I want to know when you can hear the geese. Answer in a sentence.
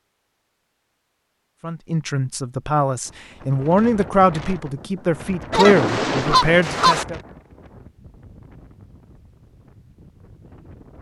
You can hear the geese from 5.5 to 7.0 s.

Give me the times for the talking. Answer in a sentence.
The talking can be heard from 1.6 to 7.2 s.